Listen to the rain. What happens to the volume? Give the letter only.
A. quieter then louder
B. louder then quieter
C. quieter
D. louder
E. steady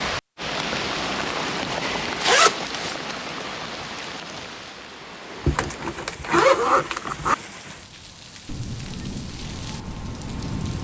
A.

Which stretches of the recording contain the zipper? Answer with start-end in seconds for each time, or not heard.
1.8-3.1, 5.4-7.3.